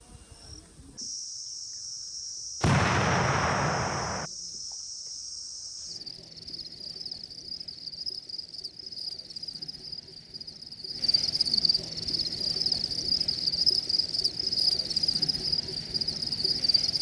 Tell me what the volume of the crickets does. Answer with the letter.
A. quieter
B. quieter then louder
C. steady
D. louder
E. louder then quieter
D.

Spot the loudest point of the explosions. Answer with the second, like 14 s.
3 s.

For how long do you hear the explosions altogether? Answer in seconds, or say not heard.
2 s.